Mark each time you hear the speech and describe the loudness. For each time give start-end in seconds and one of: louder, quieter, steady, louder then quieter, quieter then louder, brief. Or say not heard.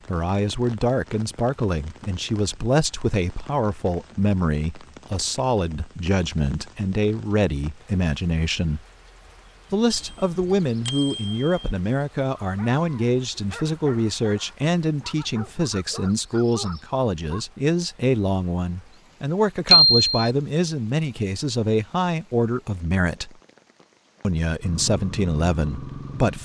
0.1-8.8 steady
9.7-23.4 steady
24.2-26.4 brief.